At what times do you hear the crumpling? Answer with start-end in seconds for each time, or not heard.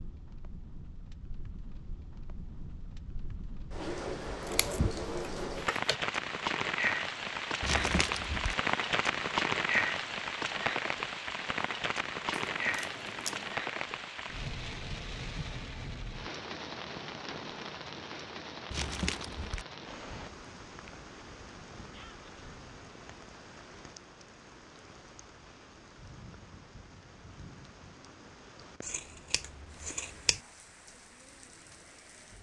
7.6-8.6, 18.7-19.6.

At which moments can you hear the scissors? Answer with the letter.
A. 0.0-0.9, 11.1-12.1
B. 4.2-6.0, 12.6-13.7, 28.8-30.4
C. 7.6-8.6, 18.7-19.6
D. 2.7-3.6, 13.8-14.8
B.